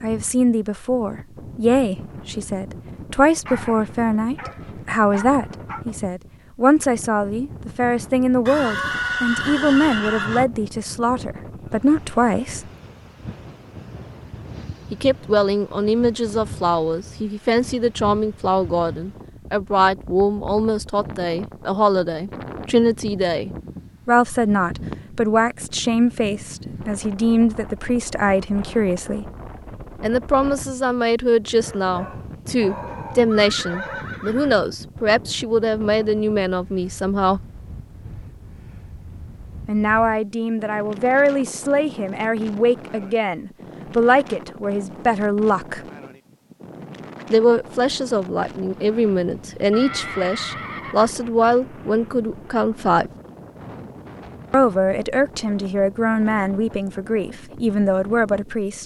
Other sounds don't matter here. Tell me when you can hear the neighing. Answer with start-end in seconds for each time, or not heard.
8.4-10.4, 32.9-34.5, 48.6-51.1.